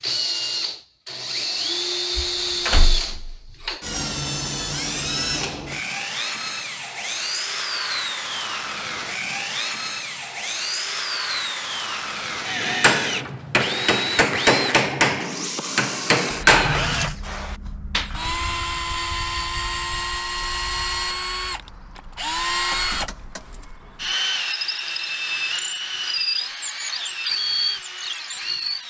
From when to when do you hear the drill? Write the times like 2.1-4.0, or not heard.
0.0-28.8.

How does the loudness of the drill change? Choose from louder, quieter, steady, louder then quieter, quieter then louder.
steady.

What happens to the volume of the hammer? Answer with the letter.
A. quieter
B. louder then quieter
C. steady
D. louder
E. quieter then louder
B.